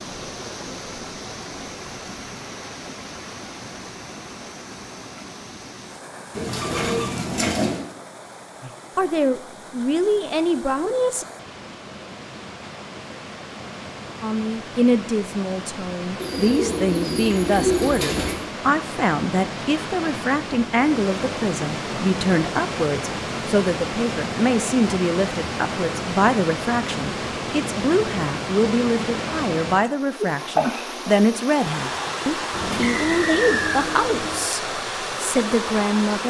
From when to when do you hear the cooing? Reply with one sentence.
The cooing can be heard from 6.3 to 7.8 s, from 16.1 to 18.4 s and from 32.5 to 34.4 s.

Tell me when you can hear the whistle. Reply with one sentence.
You can hear the whistle from 32.8 to 33.9 s.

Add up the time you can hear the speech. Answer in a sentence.
You can hear the speech for 25 seconds altogether.